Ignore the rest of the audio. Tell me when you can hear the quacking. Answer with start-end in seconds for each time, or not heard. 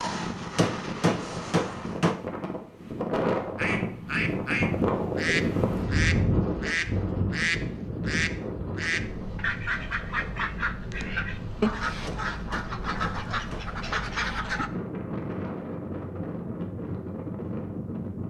3.5-14.7.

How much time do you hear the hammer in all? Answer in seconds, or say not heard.
3 s.